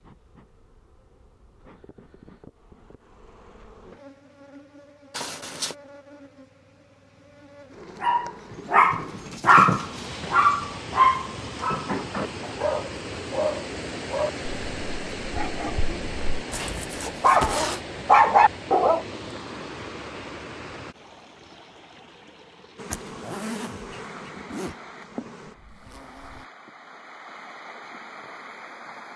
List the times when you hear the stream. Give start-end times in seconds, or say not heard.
9.7-29.1.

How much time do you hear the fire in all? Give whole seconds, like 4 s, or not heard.
not heard.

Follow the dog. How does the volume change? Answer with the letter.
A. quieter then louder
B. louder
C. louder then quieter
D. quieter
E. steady
A.